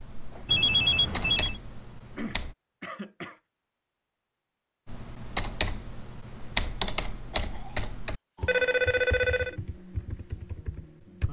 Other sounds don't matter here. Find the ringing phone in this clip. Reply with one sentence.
You can hear the ringing phone from 0.5 to 1.6 s and from 8.4 to 9.6 s.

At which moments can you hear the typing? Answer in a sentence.
The typing can be heard from 0.0 to 2.5 s and from 4.8 to 11.2 s.